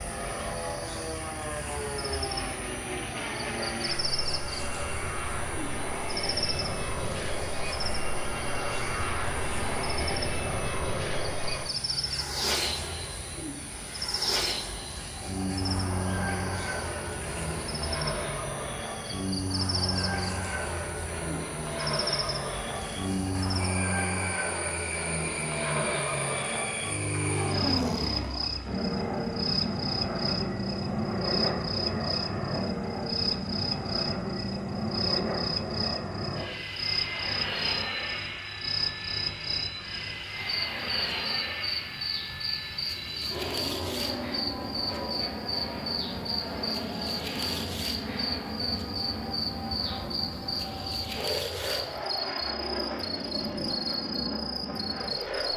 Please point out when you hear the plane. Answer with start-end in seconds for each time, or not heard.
0.0-55.5.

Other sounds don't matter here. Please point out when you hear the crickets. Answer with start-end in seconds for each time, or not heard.
0.0-55.5.